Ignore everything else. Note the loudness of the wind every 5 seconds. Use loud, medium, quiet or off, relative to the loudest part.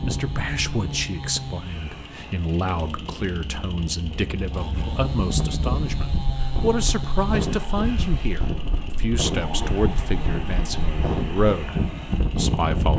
medium, loud, loud.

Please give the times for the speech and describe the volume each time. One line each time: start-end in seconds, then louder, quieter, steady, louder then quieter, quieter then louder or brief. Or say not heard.
0.0-12.9 steady.